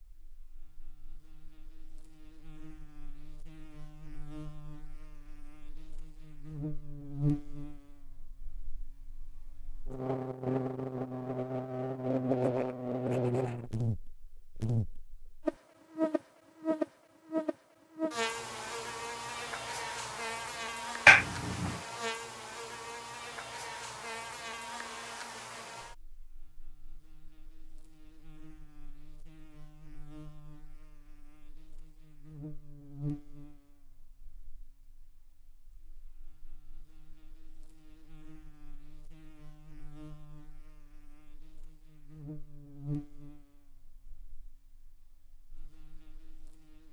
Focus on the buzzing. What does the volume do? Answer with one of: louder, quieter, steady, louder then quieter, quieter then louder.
louder then quieter.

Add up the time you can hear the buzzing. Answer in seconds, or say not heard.
47 s.